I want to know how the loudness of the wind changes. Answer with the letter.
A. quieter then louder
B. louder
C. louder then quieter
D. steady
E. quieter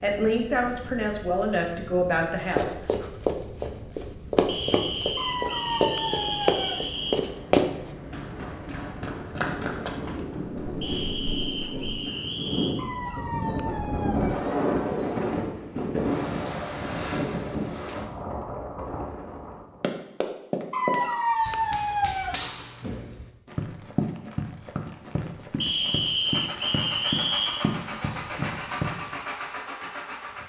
B.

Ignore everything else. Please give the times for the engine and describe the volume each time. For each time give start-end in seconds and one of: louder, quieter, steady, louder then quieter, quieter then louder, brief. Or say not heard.
26.2-30.4 steady.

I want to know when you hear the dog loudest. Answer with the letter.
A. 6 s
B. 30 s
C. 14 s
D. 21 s
D.